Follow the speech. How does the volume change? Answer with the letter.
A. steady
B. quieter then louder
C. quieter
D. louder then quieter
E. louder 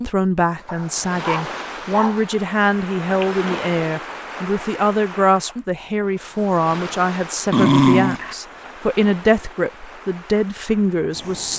A.